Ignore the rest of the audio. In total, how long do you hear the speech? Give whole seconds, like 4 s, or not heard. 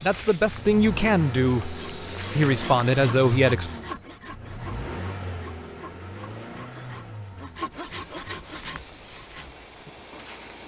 4 s.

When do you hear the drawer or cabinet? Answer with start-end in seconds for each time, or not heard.
not heard.